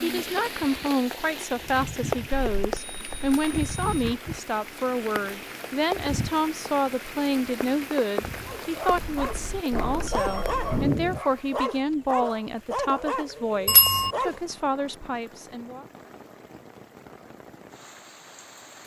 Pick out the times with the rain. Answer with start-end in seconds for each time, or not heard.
0.0-18.8.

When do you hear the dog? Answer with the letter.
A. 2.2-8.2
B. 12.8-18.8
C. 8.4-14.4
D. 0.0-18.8
C.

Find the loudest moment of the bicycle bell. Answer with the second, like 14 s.
14 s.